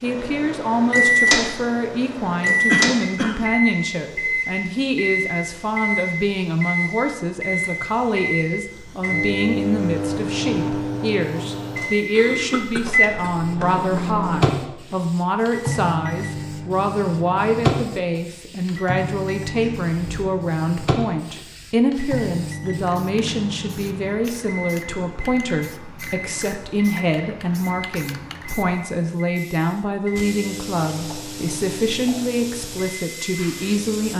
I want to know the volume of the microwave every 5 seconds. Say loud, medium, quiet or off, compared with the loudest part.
loud, loud, loud, medium, medium, off, quiet.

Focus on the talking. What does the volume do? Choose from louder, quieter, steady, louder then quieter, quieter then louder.
steady.